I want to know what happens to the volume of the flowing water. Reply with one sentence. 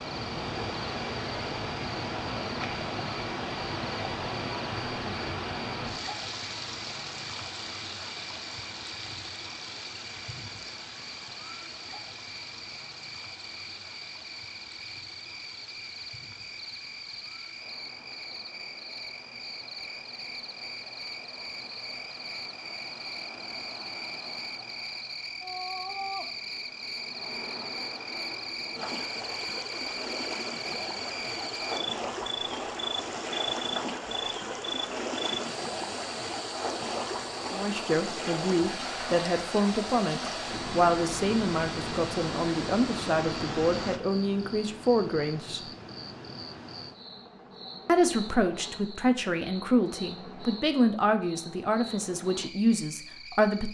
The volume of the flowing water goes down, then up.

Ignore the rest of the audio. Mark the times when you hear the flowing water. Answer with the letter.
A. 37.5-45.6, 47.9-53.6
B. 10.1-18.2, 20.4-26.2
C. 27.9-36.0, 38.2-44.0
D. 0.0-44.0
D.